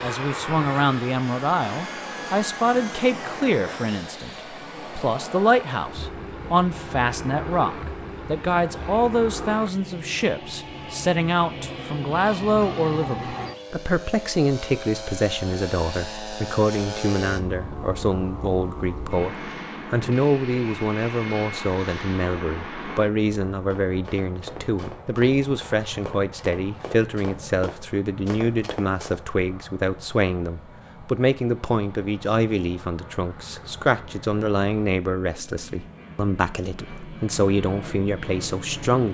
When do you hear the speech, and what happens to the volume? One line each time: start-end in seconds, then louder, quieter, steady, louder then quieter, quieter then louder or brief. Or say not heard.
0.0-39.0 steady.